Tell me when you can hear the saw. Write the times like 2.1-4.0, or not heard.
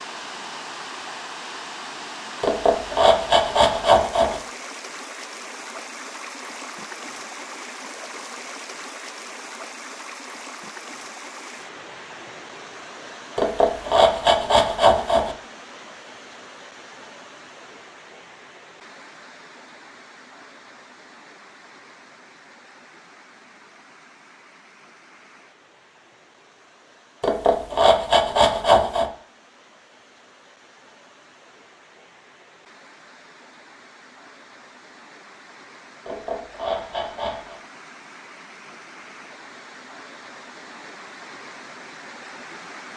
2.4-4.4, 13.3-15.3, 27.2-29.1, 36.0-37.5.